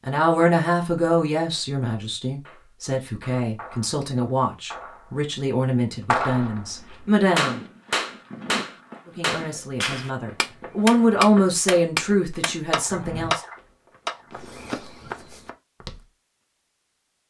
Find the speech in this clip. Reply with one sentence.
The speech can be heard from 0.1 to 7.6 s and from 9.1 to 13.4 s.